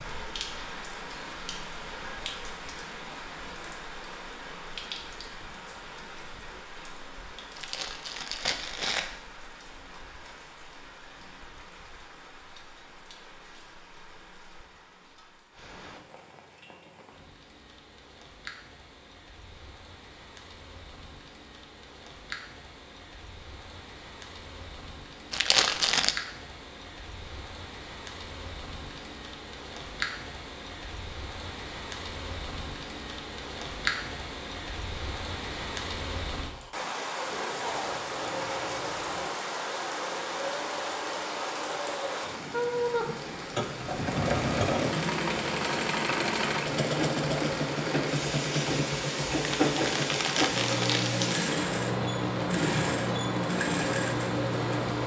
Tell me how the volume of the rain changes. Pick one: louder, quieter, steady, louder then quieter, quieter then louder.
quieter then louder.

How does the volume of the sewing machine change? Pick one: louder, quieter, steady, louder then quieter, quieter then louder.
louder.